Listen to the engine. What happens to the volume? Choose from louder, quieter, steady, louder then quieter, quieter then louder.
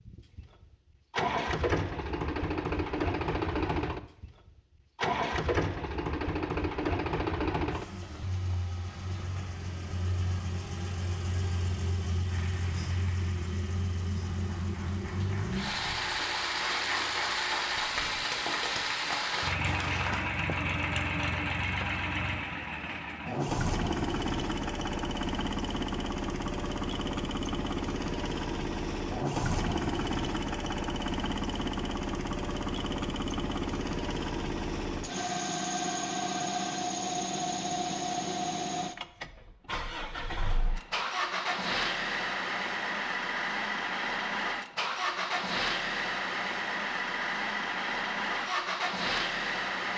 steady.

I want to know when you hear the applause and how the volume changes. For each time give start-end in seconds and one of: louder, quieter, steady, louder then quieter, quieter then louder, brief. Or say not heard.
12.3-20.2 louder.